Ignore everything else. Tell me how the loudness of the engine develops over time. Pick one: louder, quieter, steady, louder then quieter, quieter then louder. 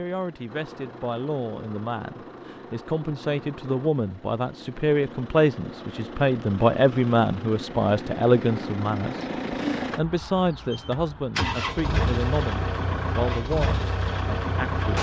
louder.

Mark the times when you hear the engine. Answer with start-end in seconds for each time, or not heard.
0.0-14.9.